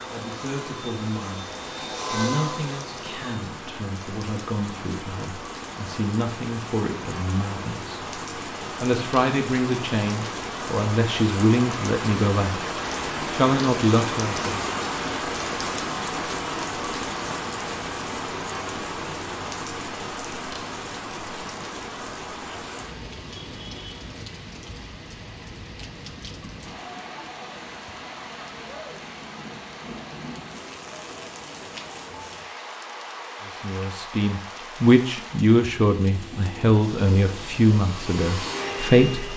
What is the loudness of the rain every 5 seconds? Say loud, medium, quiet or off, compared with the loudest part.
medium, medium, loud, loud, medium, medium, medium, medium.